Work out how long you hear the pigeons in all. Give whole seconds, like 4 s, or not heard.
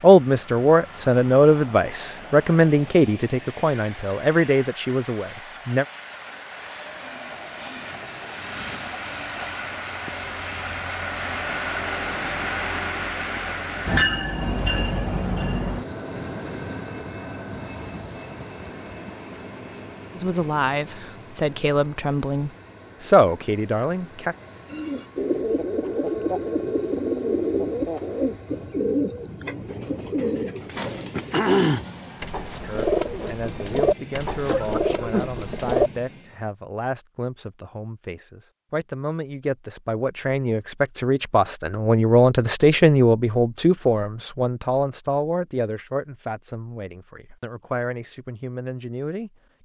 11 s.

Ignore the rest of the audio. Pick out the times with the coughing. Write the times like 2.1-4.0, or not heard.
34.5-35.4.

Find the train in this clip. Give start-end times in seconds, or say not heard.
0.0-36.5.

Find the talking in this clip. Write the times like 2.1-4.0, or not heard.
0.0-5.8, 20.1-24.4, 32.6-49.6.